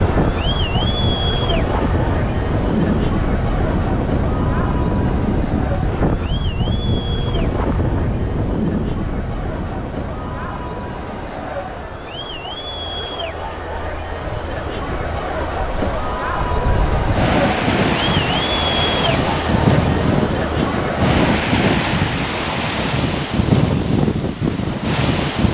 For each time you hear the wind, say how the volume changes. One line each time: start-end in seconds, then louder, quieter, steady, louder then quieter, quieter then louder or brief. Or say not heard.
0.0-25.4 quieter then louder.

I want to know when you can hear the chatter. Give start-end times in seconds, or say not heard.
0.0-21.4.